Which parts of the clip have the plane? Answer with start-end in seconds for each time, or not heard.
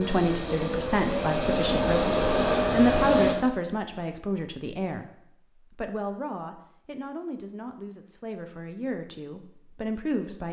0.0-3.4.